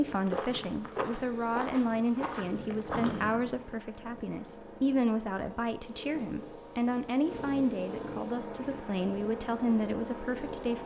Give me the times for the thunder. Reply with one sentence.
You can hear the thunder from 2.4 to 3.6 s.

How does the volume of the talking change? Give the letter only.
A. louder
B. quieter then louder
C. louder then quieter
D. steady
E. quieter
D.